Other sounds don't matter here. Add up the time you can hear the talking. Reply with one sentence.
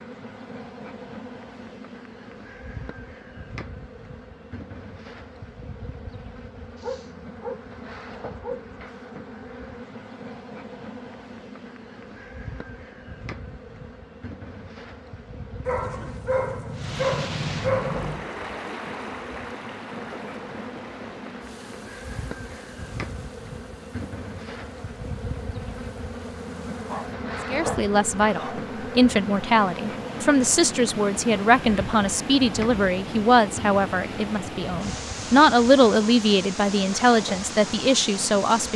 You can hear the talking for 11 seconds altogether.